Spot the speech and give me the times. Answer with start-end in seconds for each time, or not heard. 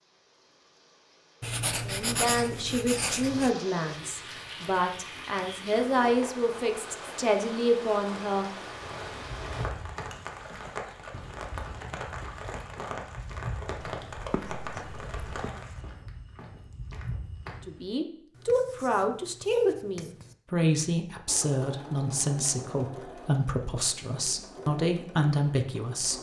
1.9-8.4, 17.6-26.1.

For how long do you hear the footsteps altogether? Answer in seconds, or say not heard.
9 s.